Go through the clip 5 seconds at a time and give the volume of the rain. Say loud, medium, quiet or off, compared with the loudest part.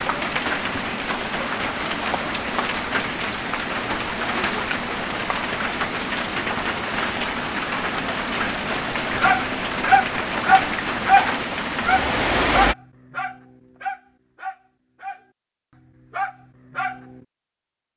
loud, loud, loud, off.